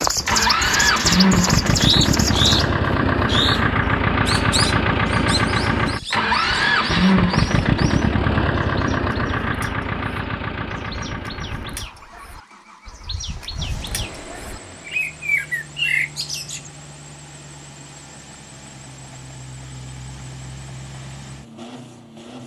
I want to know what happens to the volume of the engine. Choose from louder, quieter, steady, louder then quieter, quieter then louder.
quieter.